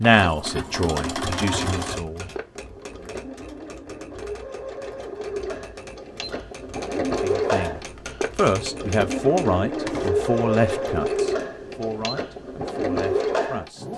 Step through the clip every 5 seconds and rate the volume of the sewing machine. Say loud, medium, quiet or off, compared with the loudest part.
medium, loud, loud.